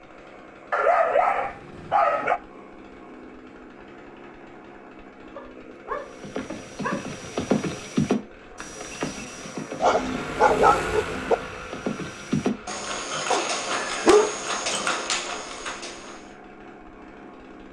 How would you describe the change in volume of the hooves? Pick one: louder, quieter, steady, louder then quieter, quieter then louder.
steady.